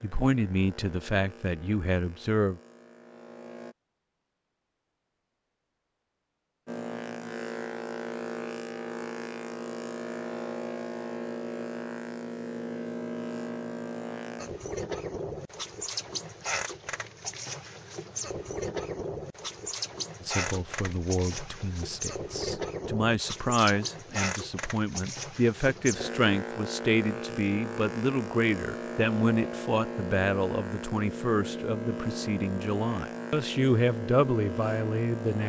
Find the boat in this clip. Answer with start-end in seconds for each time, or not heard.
0.0-3.8, 6.7-35.4.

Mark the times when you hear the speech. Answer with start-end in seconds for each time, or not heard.
0.0-2.6, 20.2-35.4.